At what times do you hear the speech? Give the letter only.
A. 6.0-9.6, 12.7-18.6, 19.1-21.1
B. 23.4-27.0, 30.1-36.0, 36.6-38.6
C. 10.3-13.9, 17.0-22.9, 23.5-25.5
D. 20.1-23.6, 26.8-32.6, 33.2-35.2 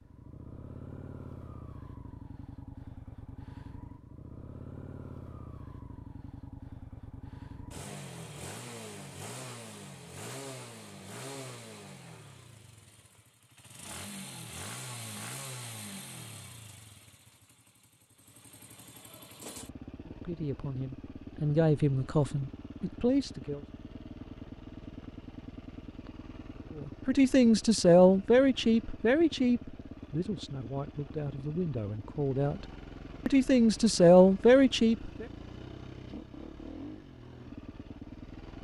D.